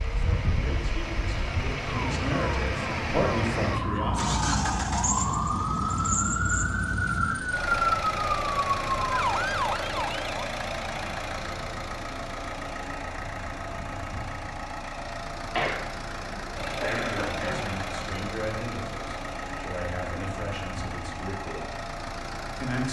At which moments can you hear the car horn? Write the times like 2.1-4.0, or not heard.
not heard.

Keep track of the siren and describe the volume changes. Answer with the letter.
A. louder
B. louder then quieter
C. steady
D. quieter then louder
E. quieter
A.